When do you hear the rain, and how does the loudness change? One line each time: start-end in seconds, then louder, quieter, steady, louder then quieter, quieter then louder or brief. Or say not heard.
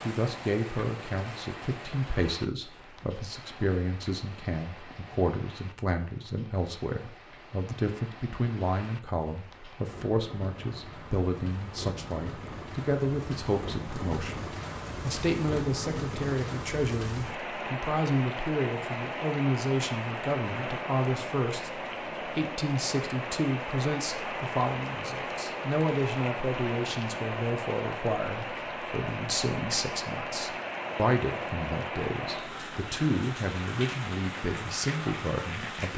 0.0-35.9 louder.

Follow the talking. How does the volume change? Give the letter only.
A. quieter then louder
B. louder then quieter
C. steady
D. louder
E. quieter
C.